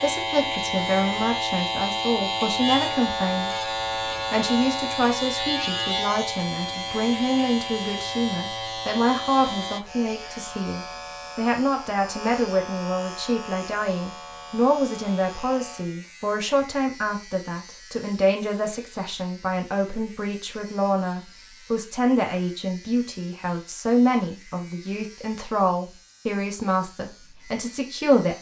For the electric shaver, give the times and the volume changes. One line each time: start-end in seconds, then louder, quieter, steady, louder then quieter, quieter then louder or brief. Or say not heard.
0.0-28.3 quieter.